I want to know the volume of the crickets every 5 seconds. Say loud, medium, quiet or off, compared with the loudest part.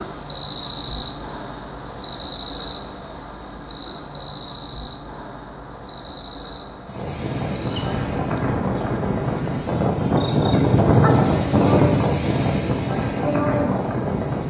loud, medium, loud.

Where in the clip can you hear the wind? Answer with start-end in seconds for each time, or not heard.
6.8-14.4.